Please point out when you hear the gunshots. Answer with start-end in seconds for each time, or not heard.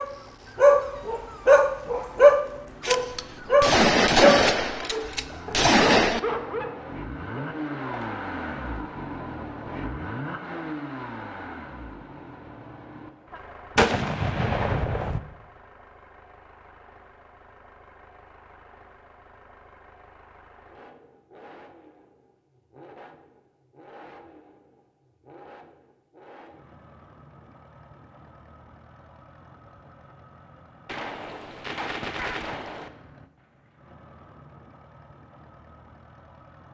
2.8-6.2, 13.8-15.2, 30.9-32.9.